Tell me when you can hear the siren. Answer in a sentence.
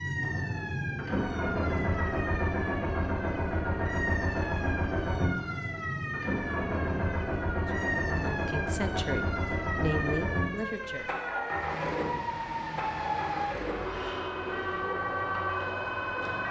You can hear the siren from 0.0 to 16.4 s.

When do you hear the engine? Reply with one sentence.
You can hear the engine from 0.0 to 16.4 s.